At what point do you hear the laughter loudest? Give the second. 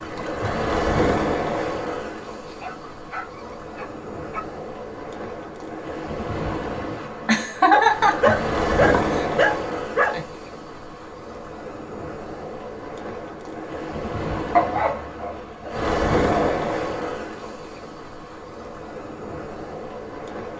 8 s.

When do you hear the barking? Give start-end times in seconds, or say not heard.
2.5-4.4, 7.7-10.2, 14.6-16.6.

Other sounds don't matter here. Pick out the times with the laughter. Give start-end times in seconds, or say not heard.
7.2-9.2.